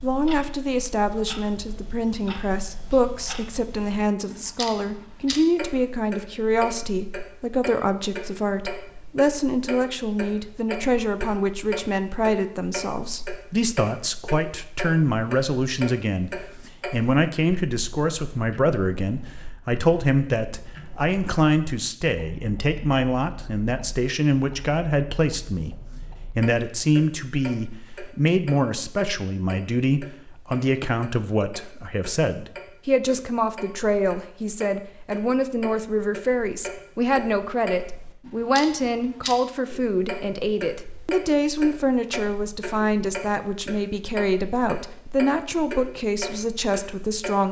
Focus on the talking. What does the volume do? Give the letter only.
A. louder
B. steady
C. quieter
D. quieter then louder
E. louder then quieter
B.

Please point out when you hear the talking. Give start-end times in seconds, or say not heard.
0.0-47.4.